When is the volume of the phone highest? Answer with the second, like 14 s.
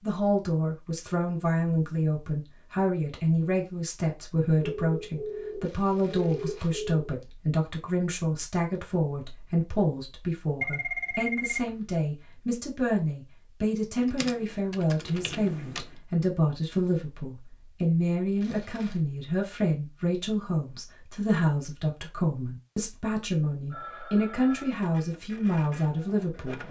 11 s.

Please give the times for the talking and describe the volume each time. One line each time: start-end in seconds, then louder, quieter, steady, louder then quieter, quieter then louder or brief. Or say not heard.
0.0-26.6 steady.